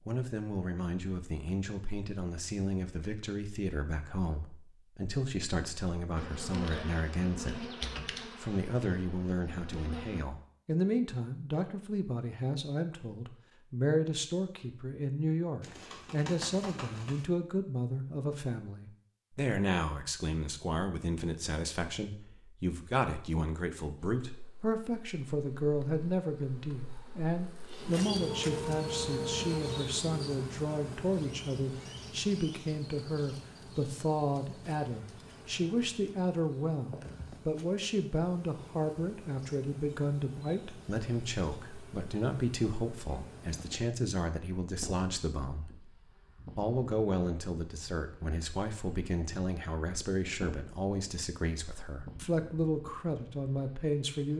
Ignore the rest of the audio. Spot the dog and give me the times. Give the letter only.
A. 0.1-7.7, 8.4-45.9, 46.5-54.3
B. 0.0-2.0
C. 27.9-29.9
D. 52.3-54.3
C.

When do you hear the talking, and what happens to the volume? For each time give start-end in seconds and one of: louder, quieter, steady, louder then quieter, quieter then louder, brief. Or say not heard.
0.1-7.7 steady
8.4-45.9 steady
46.5-54.3 steady.